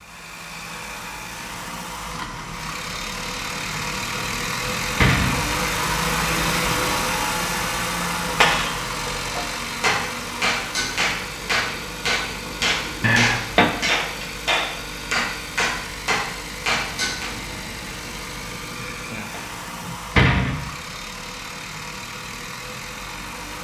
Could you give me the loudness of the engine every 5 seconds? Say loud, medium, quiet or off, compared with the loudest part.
medium, loud, medium, medium, medium.